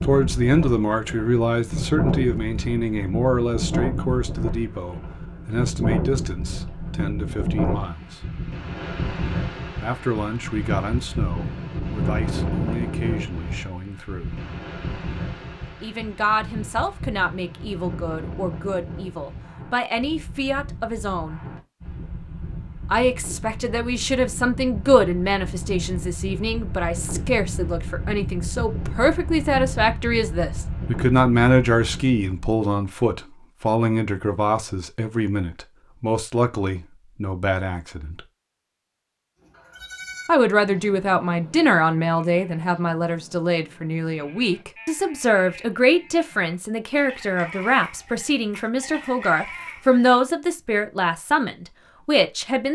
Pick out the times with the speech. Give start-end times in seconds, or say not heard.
0.0-8.2, 9.8-14.4, 15.8-21.4, 22.9-38.2, 40.2-52.7.